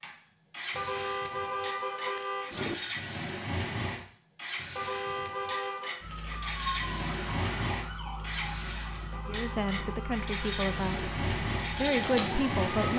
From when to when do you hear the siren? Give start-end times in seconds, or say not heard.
6.0-12.9.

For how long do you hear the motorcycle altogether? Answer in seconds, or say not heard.
13 s.